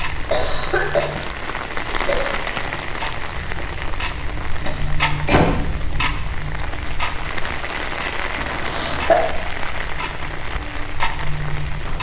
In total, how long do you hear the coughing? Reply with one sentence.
The coughing can be heard for 4 seconds in total.